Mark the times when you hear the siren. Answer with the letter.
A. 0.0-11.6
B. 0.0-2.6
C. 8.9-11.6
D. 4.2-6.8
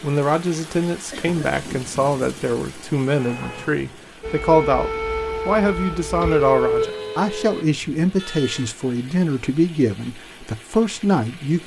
D.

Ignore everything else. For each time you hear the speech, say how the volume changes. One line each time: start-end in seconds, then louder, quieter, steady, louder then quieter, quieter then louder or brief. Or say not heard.
0.0-11.6 steady.